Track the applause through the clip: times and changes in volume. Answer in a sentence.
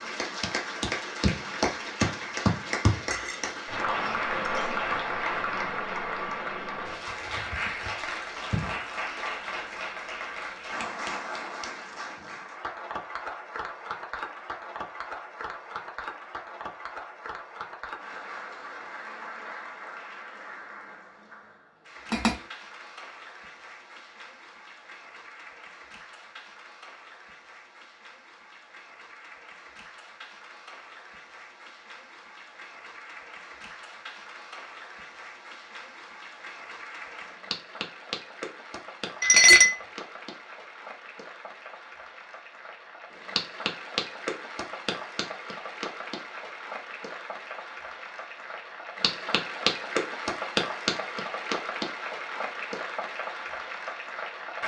You can hear the applause from 0.0 to 54.6 s, getting quieter then louder.